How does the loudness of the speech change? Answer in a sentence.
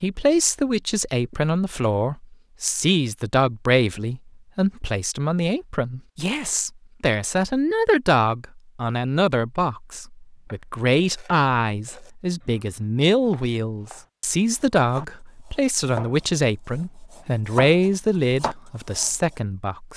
The loudness of the speech stays about the same.